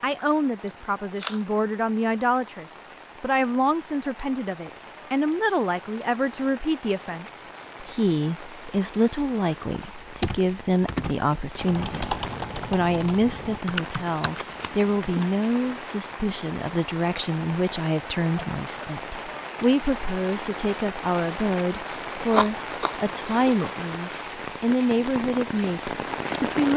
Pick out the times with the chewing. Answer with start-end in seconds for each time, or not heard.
0.1-1.4, 14.2-15.7, 22.2-23.7.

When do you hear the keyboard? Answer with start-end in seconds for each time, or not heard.
9.7-15.2.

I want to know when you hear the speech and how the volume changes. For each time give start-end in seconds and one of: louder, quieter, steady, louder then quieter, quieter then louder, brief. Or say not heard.
0.0-26.7 steady.